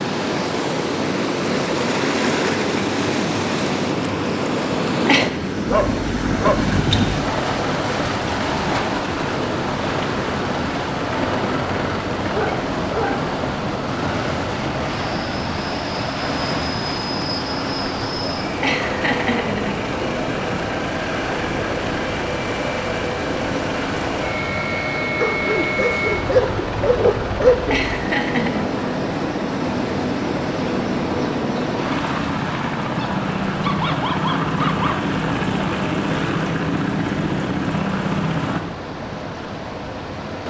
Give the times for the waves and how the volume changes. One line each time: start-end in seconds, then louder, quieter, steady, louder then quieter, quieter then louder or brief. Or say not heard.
0.0-40.4 quieter.